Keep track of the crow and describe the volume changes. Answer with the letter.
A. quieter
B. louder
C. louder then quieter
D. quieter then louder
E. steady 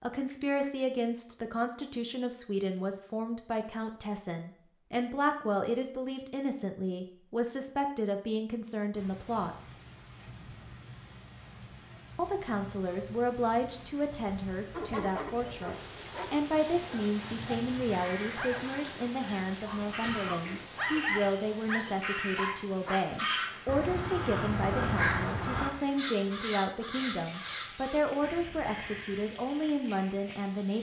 C.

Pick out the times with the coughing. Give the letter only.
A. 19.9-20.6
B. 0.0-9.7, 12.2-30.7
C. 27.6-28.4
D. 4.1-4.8
A.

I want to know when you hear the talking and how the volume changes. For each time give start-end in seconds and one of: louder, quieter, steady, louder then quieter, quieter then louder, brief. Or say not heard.
0.0-9.7 steady
12.2-30.7 steady.